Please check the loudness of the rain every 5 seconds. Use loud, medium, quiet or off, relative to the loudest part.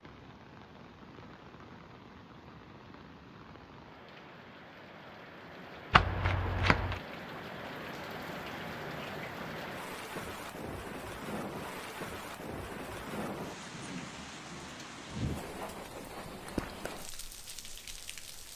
medium, loud, loud, loud.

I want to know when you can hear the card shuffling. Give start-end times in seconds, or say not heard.
5.9-7.0.